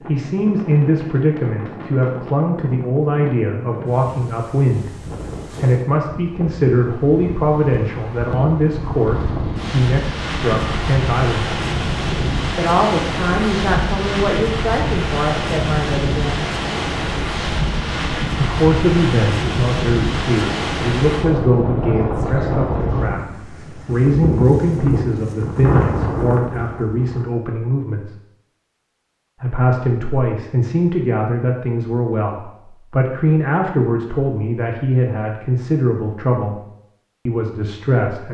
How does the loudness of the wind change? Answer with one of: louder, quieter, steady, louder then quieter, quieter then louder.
louder.